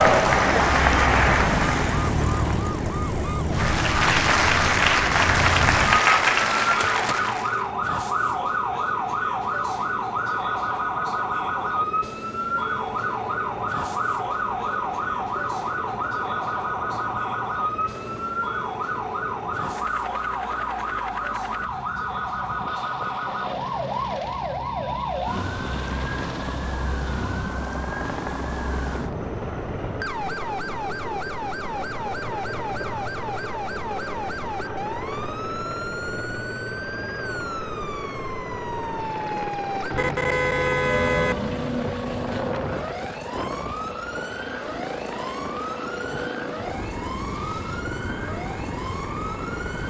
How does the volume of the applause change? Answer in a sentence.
The loudness of the applause goes down, then up.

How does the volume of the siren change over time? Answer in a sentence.
The loudness of the siren goes down.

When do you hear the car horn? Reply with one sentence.
You can hear the car horn from 39.9 to 41.9 s.